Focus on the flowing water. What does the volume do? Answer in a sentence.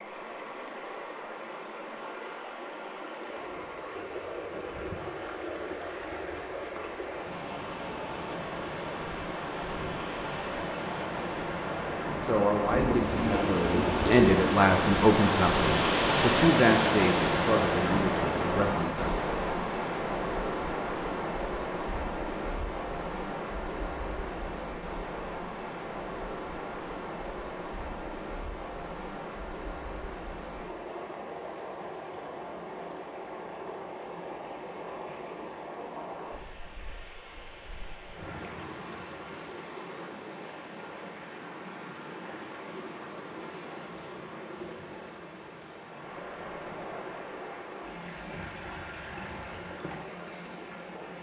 The volume of the flowing water goes up, then down.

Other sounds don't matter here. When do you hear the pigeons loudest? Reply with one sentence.
The volume of the pigeons peaks at 14 seconds.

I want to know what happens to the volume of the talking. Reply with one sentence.
The loudness of the talking goes up, then down.